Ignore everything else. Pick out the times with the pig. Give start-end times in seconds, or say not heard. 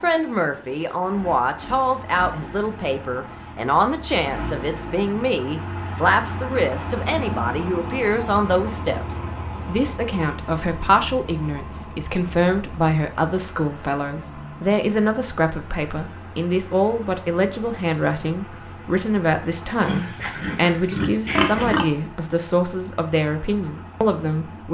19.8-21.9.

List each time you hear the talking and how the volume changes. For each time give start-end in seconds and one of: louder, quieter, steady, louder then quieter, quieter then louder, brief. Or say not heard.
0.0-24.6 steady.